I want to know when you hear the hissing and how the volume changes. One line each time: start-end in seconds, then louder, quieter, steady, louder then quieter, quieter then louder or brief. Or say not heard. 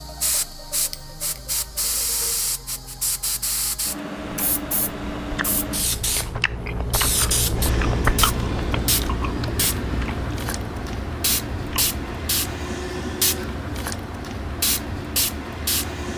0.0-16.1 steady.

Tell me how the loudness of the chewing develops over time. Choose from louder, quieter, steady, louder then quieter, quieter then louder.
louder then quieter.